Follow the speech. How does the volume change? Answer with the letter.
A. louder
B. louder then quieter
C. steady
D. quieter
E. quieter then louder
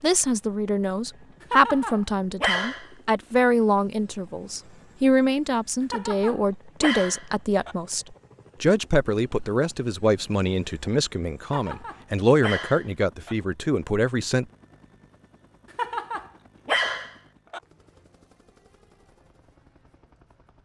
C.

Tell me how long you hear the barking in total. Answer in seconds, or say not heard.
7 s.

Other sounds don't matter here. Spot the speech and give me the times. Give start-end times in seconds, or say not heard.
0.0-14.4.